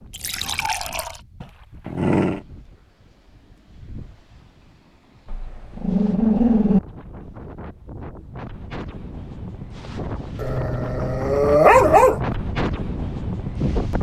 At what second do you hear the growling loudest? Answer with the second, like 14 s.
12 s.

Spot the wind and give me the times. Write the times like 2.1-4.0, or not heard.
0.0-13.9.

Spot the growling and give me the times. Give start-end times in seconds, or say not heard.
1.4-2.4, 5.2-6.8, 10.3-12.2.